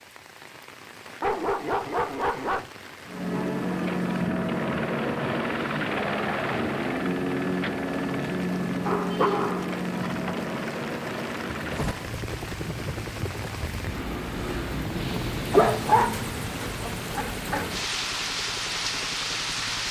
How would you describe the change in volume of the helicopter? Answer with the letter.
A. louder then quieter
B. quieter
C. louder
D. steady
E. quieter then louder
B.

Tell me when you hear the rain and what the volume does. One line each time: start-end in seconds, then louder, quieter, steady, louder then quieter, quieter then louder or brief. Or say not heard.
0.0-19.8 louder.